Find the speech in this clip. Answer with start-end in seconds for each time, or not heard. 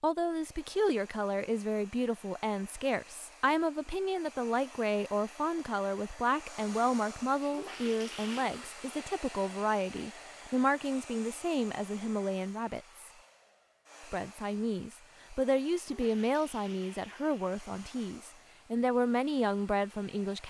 0.0-13.0, 14.1-20.4.